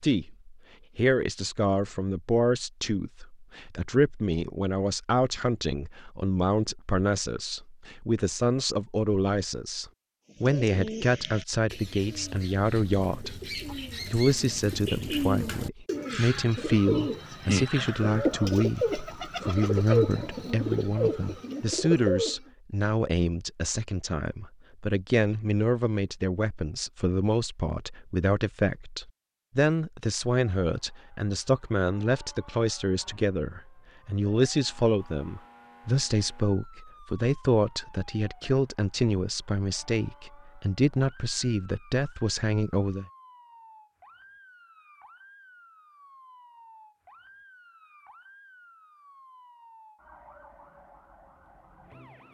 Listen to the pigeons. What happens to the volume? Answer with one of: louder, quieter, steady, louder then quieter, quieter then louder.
louder.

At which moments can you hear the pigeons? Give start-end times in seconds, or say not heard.
10.3-22.4.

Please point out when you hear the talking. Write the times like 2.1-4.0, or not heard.
0.0-43.0.